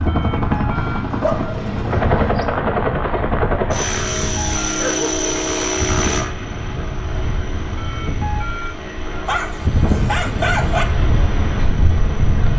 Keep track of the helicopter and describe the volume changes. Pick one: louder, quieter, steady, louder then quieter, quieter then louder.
quieter.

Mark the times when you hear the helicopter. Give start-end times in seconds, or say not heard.
0.0-12.5.